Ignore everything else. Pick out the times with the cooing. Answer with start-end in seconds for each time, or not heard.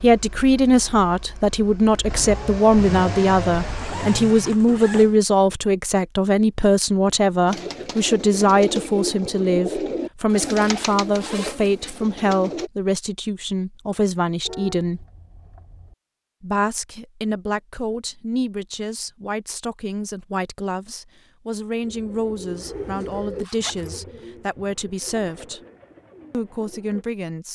7.5-12.7, 21.8-27.1.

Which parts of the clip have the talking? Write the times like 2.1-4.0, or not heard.
0.0-15.1, 16.4-25.6, 26.3-27.5.